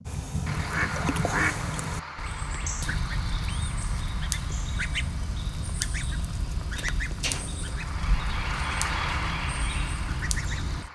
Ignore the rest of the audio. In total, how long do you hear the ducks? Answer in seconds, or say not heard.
11 s.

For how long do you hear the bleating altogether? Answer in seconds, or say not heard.
not heard.